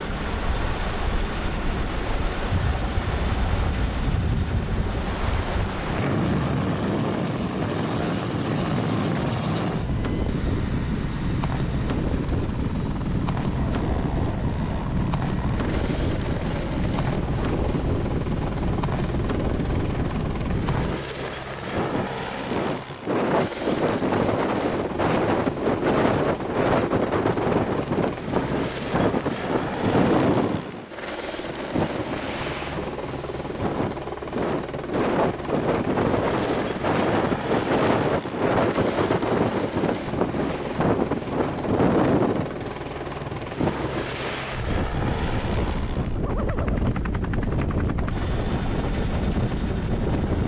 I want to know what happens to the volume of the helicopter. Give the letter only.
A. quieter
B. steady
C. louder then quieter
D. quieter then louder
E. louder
B.